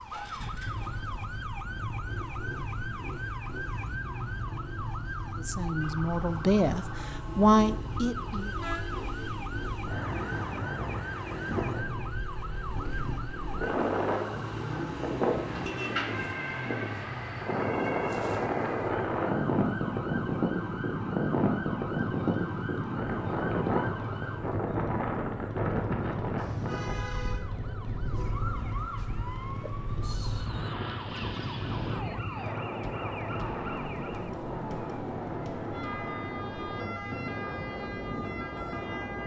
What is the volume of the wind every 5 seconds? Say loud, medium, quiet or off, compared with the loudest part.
quiet, quiet, medium, loud, loud, medium, medium, medium.